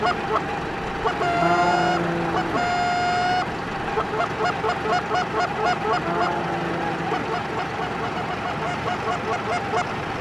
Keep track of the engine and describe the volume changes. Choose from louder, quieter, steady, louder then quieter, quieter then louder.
steady.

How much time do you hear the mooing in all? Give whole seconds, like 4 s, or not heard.
3 s.